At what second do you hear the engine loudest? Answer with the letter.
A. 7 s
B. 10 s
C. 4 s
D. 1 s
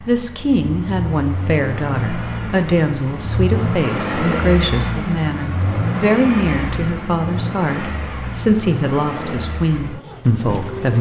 C.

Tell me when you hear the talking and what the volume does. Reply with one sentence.
The talking can be heard from 0.0 to 10.9 s, at a steady volume.